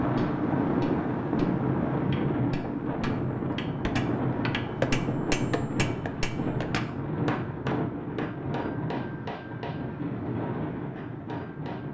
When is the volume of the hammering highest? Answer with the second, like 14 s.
5 s.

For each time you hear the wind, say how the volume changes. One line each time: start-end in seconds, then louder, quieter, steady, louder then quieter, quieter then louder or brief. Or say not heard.
0.0-11.8 quieter.